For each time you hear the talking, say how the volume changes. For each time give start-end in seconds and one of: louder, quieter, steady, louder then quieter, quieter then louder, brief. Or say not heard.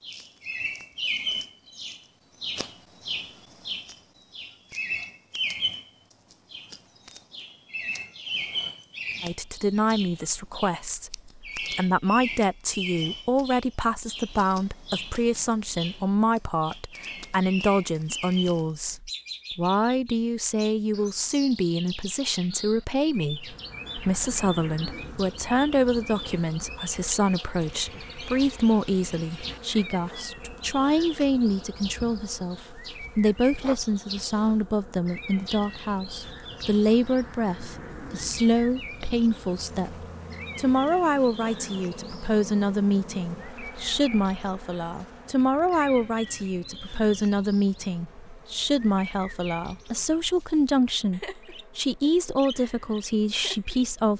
9.2-54.1 steady.